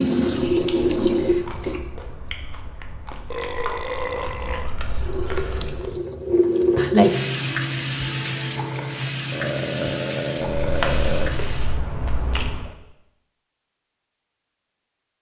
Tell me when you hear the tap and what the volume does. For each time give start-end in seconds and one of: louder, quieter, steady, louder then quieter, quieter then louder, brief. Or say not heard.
0.0-1.9 brief
5.0-11.8 louder then quieter.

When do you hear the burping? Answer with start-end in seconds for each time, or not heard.
3.3-4.8, 9.3-11.3.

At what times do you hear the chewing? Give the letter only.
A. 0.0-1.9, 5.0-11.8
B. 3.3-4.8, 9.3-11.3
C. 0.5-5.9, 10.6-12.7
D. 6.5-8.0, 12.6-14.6
C.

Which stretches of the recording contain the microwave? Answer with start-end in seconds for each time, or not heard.
not heard.